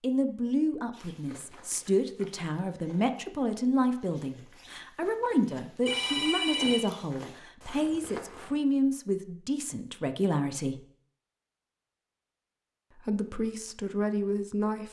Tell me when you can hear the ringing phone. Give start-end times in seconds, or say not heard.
5.8-6.8.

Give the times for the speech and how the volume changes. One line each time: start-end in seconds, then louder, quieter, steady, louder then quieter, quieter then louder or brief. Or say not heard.
0.0-10.8 steady
12.9-14.8 brief.